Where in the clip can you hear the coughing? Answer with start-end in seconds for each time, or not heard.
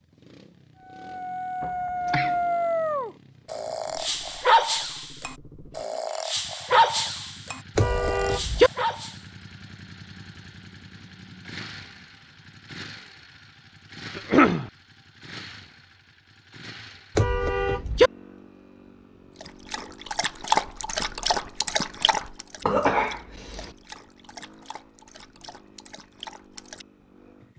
1.6-2.4, 14.2-14.7, 22.6-23.8.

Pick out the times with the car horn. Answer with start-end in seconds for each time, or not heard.
7.8-8.7, 17.1-18.1.